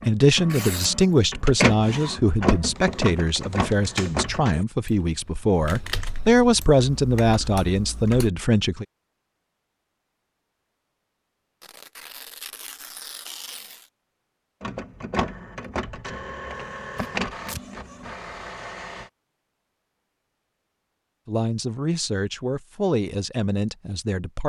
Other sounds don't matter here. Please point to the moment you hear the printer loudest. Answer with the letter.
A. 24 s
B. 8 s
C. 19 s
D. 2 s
D.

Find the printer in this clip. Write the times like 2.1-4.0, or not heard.
0.0-4.5, 14.6-19.1.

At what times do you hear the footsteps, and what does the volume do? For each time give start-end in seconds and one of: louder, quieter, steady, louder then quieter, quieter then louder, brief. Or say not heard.
not heard.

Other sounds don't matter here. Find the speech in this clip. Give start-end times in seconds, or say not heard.
0.0-8.8, 21.2-24.4.